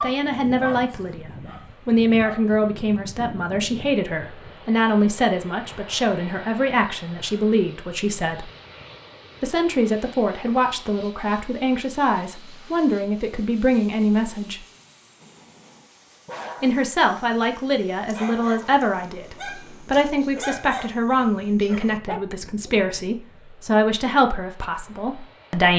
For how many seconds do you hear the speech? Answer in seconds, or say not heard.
23 s.